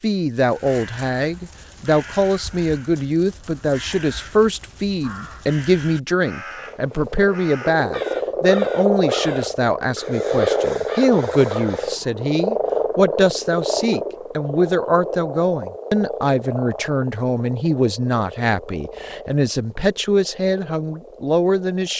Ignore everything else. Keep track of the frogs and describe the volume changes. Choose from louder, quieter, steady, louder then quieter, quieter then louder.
quieter.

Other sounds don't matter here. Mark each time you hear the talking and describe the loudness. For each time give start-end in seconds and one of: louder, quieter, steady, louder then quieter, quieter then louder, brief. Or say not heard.
0.0-21.9 steady.